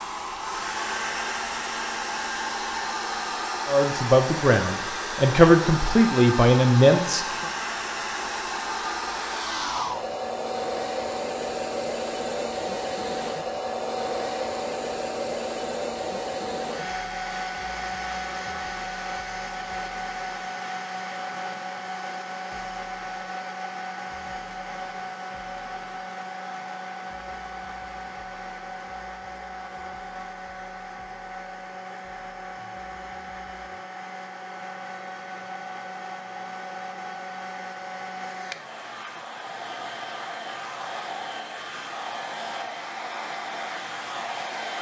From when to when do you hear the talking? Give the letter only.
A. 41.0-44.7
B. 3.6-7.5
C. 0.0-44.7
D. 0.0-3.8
B.